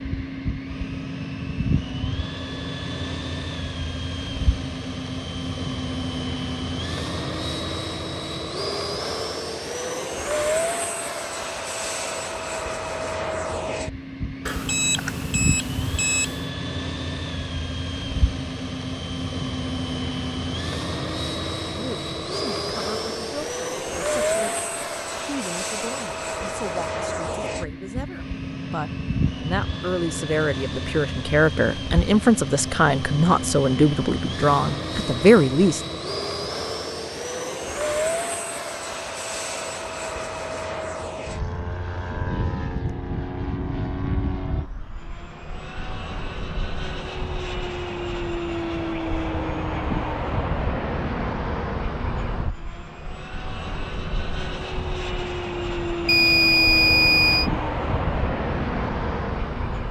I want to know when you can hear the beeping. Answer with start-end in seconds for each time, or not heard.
14.4-16.4, 56.0-57.5.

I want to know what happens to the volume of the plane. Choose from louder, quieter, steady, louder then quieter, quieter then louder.
steady.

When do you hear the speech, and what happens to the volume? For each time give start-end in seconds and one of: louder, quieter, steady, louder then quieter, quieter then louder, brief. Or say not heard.
21.8-36.0 louder.